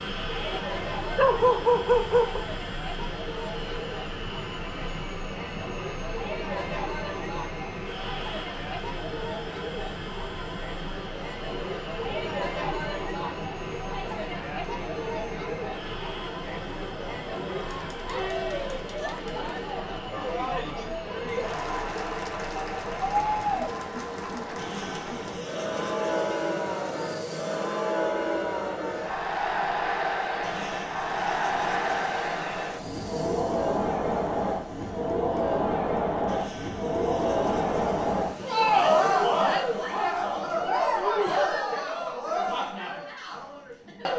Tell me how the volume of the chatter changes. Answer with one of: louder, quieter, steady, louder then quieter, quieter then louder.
louder.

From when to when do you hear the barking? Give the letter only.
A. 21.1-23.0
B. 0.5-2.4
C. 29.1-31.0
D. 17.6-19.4
B.